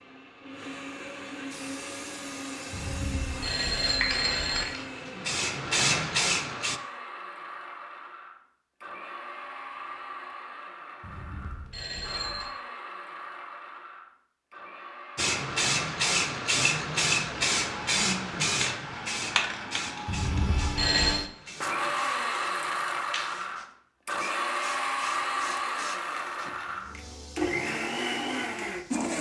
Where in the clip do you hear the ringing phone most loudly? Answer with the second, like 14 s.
21 s.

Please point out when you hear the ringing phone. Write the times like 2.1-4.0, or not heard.
2.7-4.7, 11.0-12.5, 20.1-21.2.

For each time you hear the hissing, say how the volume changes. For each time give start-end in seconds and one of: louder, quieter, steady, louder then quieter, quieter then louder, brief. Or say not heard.
1.5-6.8 louder
15.2-29.1 quieter.